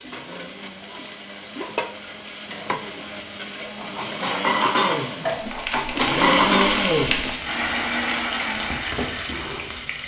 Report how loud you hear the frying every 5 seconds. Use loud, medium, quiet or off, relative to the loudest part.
medium, loud.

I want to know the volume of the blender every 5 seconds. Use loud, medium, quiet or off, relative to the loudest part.
medium, loud.